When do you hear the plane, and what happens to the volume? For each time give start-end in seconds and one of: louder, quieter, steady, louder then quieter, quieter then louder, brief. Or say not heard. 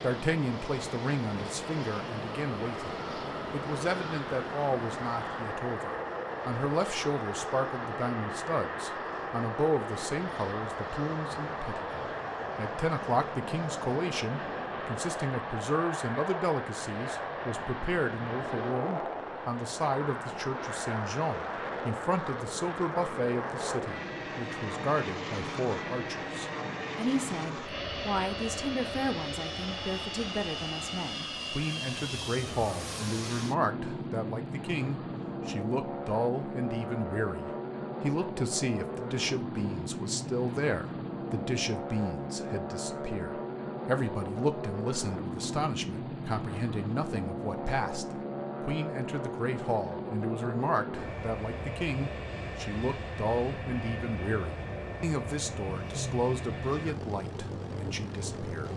0.0-58.7 steady.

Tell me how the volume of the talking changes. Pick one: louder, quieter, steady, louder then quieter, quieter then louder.
steady.